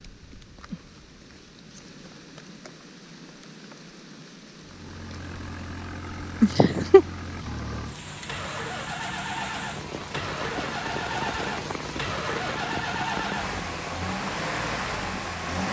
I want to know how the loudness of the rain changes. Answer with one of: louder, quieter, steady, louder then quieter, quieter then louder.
louder.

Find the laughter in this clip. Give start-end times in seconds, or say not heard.
6.4-7.0.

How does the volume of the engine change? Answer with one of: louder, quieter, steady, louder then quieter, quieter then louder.
louder.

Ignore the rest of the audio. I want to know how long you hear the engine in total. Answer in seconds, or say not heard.
11 s.